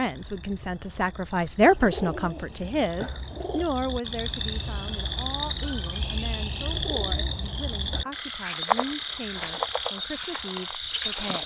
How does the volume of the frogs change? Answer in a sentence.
The loudness of the frogs goes up.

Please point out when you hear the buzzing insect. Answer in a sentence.
You can't hear the buzzing insect here.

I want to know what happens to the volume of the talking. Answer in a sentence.
The volume of the talking goes down.